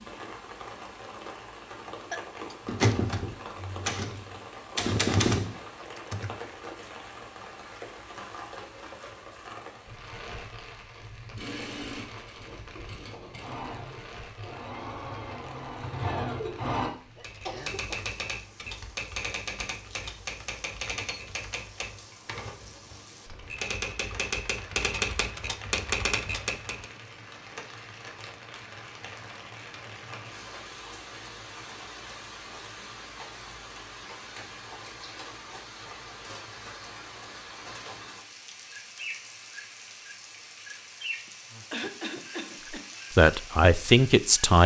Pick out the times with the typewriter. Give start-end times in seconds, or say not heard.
2.6-6.3, 17.2-26.9.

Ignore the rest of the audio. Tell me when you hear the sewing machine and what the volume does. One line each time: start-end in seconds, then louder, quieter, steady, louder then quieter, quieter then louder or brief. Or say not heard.
11.3-16.9 louder.